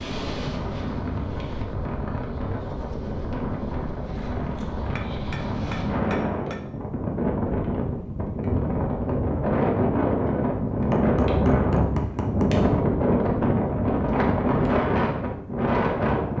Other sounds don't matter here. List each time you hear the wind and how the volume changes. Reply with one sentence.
The wind can be heard from 0.0 to 16.3 s, getting louder.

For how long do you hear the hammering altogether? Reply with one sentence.
You can hear the hammering for 3 seconds altogether.